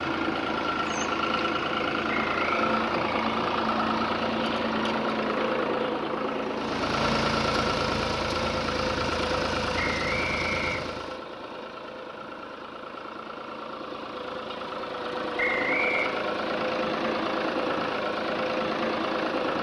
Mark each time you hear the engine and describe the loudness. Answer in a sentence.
The engine can be heard from 0.0 to 19.5 s, getting quieter then louder.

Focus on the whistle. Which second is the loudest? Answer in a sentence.
The volume of the whistle peaks at 16 seconds.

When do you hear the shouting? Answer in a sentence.
The shouting can't be heard in this clip.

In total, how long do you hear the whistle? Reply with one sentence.
You can hear the whistle for 2 seconds altogether.